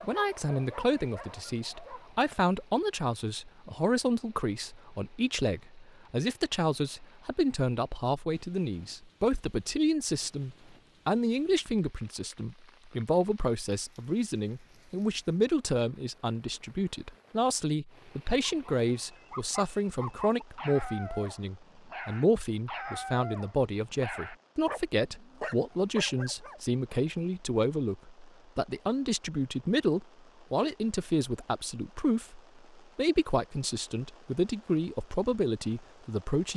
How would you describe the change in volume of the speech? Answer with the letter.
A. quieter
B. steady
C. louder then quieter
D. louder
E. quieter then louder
B.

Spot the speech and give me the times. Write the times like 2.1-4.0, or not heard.
0.0-36.5.